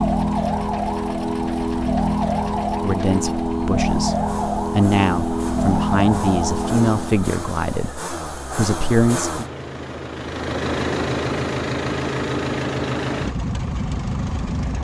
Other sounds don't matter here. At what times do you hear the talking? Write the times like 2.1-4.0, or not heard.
2.8-9.4.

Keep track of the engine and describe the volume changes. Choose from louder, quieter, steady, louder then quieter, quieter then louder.
louder.